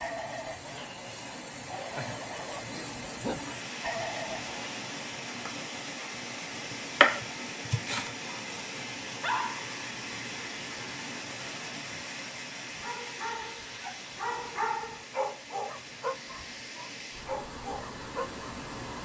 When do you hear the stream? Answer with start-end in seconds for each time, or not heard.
0.0-18.9.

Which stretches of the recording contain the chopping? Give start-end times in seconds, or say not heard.
6.7-8.1.